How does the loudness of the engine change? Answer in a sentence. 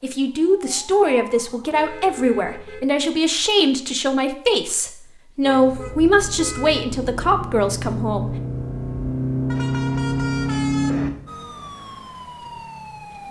The volume of the engine goes up.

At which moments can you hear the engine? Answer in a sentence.
You can hear the engine from 5.5 to 11.4 s.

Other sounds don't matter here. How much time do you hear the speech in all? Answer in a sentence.
You can hear the speech for 8 seconds altogether.